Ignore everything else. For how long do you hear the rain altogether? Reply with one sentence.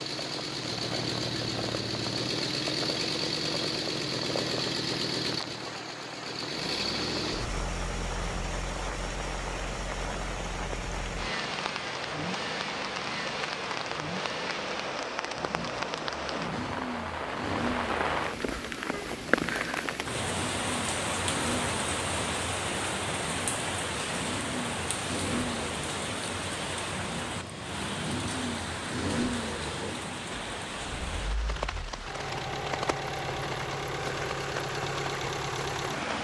The rain can be heard for 36 seconds in total.